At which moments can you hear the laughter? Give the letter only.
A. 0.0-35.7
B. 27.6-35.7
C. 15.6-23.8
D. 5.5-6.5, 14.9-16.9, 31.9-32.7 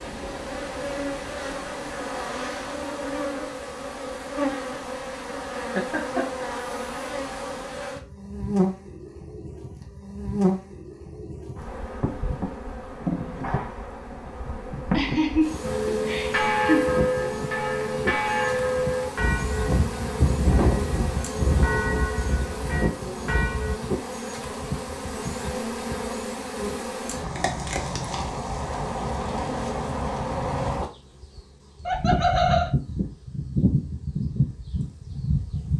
D.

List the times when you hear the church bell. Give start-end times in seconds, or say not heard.
15.6-23.8.